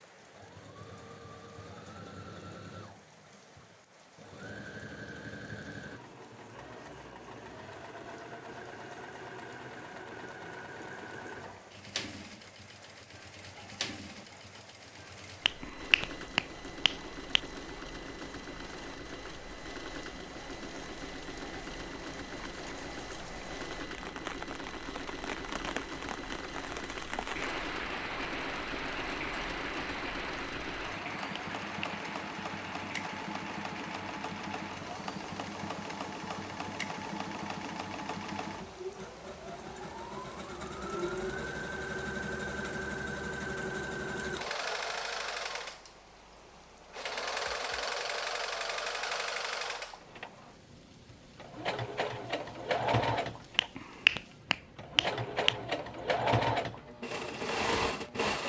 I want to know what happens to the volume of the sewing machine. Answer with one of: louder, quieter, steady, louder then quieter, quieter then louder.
louder.